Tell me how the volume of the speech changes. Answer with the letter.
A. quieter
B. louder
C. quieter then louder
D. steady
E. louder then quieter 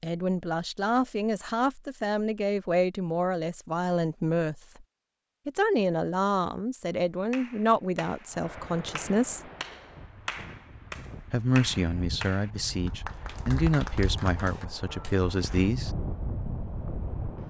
D.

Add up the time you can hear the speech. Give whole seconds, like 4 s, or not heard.
13 s.